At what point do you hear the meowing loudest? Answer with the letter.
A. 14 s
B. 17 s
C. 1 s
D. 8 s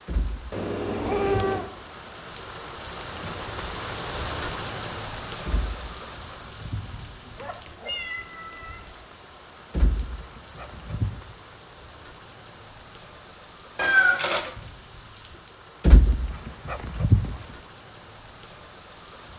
A.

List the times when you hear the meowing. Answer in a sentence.
The meowing can be heard from 0.5 to 1.7 s, from 7.3 to 8.9 s and from 13.8 to 14.6 s.